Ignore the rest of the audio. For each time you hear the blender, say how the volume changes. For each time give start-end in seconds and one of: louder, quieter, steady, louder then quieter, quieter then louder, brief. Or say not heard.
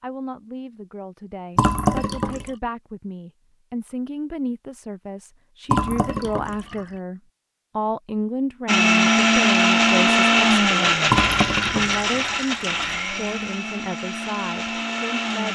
8.7-15.5 quieter.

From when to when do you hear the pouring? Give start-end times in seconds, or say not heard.
1.6-2.5, 5.7-6.8, 11.1-12.9.